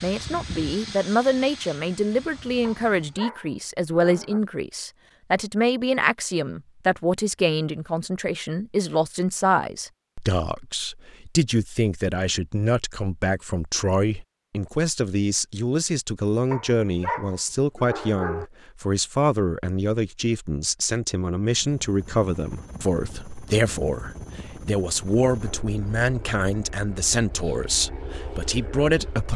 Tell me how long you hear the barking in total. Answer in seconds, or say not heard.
4 s.